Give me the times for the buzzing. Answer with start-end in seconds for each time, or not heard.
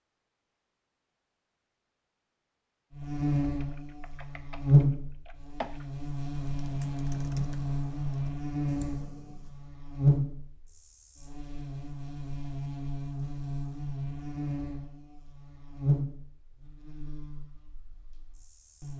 2.9-18.9.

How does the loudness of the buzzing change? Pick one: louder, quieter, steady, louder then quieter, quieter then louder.
quieter.